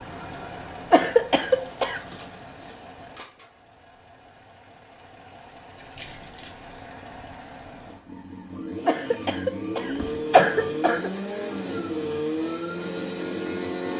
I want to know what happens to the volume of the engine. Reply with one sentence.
The volume of the engine goes down, then up.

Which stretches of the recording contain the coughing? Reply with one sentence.
The coughing can be heard from 0.9 to 2.0 s and from 8.8 to 11.1 s.